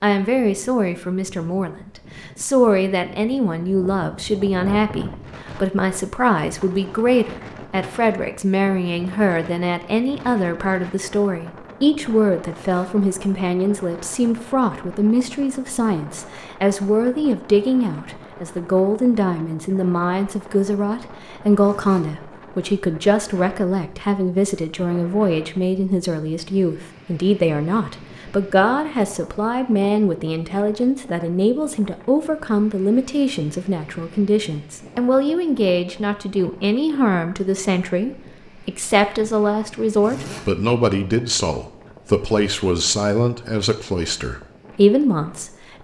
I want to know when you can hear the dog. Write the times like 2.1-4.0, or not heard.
not heard.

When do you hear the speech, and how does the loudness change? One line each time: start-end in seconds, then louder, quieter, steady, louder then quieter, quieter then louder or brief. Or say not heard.
0.0-45.7 steady.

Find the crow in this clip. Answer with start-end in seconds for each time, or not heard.
not heard.